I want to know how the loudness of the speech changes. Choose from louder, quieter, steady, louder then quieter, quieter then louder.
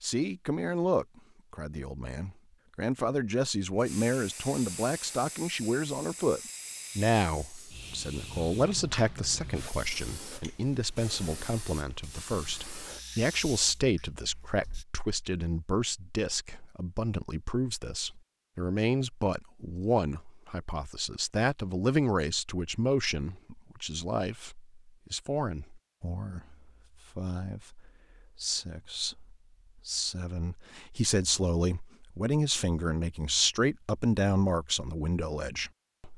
steady.